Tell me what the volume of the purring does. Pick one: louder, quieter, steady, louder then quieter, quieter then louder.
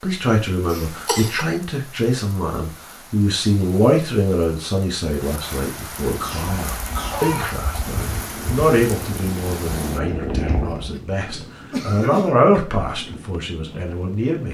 louder.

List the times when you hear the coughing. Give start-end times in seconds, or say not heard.
0.7-1.4, 6.0-7.5, 10.7-12.6.